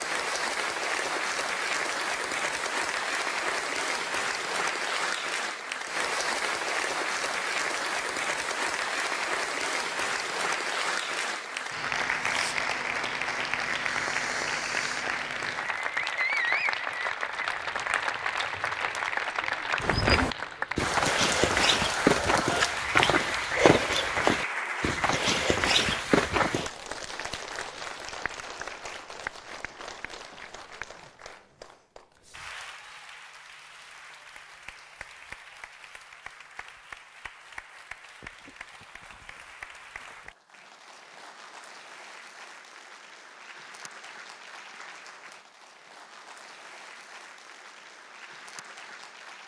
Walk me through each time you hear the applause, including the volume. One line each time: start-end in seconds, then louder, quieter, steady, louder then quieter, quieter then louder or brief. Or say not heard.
0.0-49.4 quieter.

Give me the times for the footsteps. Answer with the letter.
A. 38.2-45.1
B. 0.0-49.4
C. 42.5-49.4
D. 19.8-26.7
D.